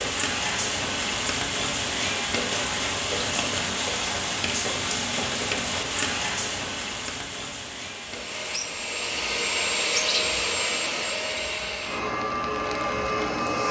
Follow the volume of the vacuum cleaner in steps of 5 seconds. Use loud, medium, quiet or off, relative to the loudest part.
off, loud, loud.